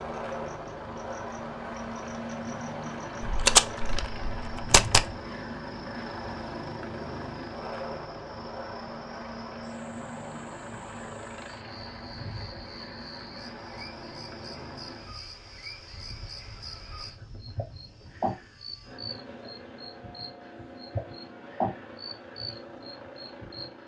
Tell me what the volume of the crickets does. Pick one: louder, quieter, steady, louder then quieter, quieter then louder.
louder.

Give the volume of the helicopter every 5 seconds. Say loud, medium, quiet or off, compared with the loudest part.
loud, loud, medium, quiet, medium.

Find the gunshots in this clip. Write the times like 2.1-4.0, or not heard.
3.2-5.2.